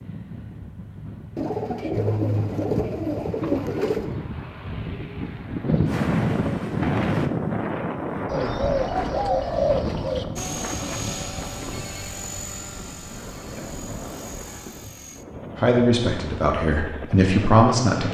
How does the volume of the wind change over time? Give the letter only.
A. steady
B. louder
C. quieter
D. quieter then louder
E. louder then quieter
E.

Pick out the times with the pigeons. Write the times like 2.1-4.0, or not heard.
1.4-4.1, 8.2-10.2, 13.1-14.8.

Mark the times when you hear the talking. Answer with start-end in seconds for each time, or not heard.
15.6-18.0.